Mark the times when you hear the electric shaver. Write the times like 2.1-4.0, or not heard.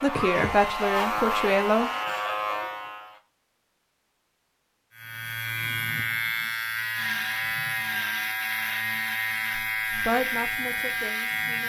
0.0-3.2, 5.0-11.6.